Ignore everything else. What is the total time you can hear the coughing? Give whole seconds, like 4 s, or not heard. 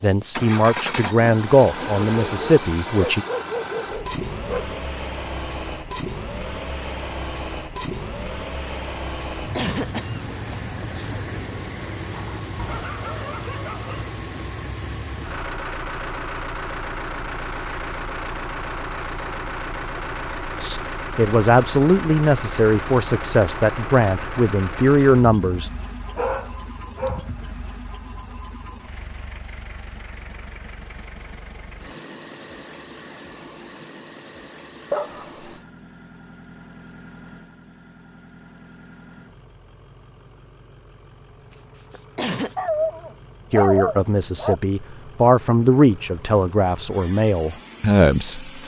3 s.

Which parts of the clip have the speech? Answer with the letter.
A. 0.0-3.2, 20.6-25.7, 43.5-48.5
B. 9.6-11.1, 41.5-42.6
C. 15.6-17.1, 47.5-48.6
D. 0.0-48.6
A.